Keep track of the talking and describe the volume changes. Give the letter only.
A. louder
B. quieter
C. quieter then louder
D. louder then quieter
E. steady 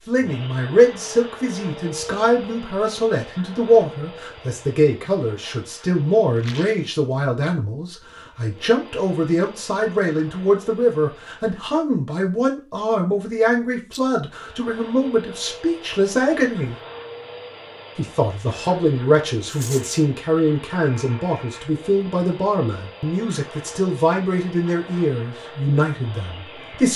E.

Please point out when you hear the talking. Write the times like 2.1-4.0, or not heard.
0.1-16.8, 17.9-26.9.